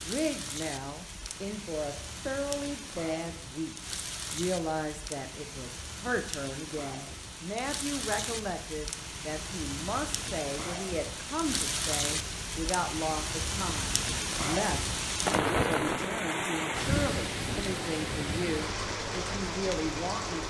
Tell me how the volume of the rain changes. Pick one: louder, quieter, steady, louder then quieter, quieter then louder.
louder.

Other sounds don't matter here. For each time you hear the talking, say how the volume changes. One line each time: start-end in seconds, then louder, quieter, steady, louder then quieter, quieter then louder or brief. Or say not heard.
0.0-20.4 steady.